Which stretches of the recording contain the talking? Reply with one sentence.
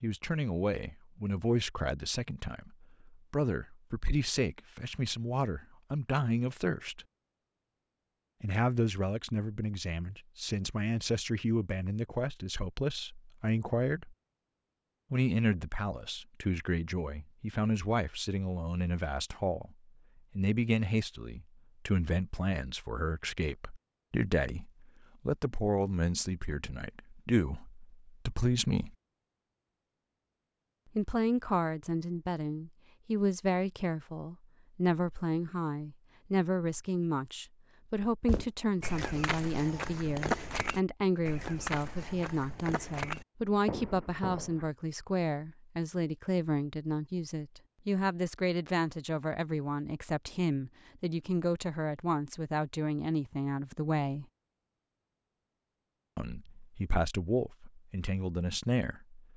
You can hear the talking from 0.0 to 7.0 s, from 8.4 to 14.2 s, from 15.1 to 19.8 s, from 20.4 to 28.9 s, from 30.9 to 54.2 s and from 56.1 to 59.2 s.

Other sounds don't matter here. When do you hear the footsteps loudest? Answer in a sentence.
The loudest moment of the footsteps is at 40 seconds.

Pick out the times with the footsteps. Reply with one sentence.
You can hear the footsteps from 38.2 to 44.6 s.